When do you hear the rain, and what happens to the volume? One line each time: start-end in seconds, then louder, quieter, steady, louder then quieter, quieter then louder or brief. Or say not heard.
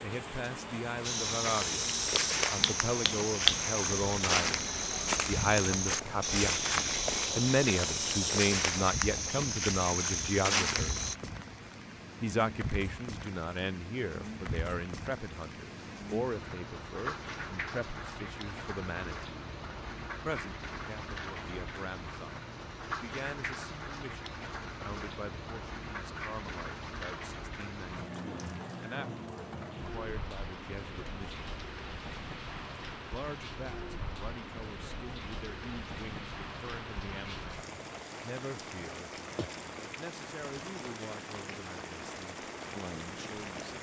0.0-43.7 steady.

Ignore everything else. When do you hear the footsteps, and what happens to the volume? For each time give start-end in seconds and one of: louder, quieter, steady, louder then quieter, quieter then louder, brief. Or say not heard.
1.0-11.2 steady.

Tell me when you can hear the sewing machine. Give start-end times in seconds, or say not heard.
not heard.